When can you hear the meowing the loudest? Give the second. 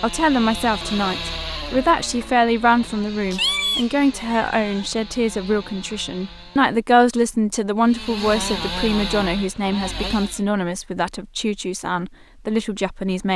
4 s.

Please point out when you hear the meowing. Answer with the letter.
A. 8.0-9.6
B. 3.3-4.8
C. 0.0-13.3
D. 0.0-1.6
B.